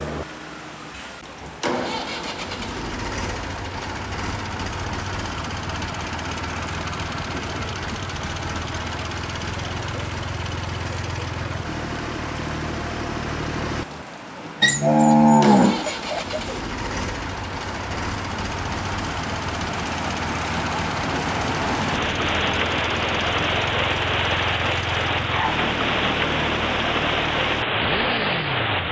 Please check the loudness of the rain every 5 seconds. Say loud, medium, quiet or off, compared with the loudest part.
quiet, quiet, quiet, medium, loud, loud.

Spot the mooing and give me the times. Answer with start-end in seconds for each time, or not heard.
14.6-16.6.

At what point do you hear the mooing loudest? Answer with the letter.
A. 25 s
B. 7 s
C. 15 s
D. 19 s
C.